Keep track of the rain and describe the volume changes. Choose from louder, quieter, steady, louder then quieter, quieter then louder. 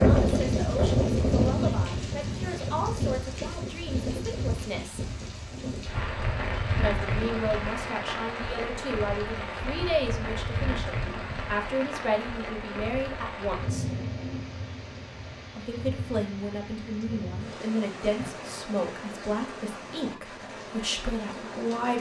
quieter.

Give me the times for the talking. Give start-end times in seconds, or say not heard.
0.0-5.0, 6.8-13.9, 15.6-21.9.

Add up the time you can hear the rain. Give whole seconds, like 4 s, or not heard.
22 s.